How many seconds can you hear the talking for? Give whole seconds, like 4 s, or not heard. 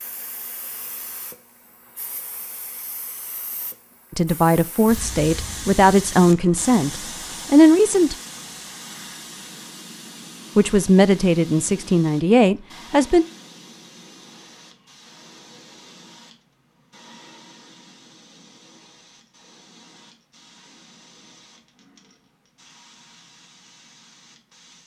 7 s.